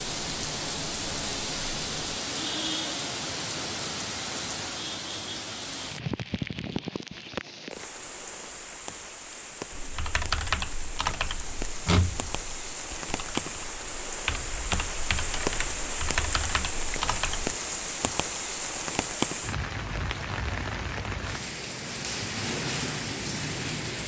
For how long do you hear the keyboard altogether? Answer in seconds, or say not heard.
8 s.